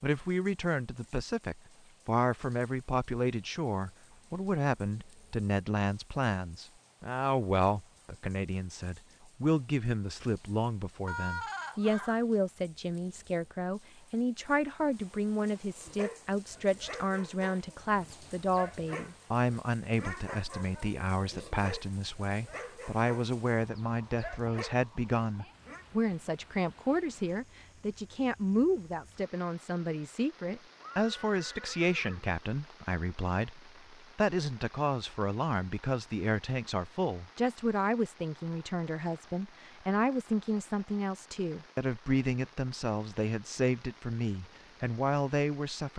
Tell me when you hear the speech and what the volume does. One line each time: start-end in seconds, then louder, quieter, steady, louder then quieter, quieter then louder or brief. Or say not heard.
0.0-45.9 steady.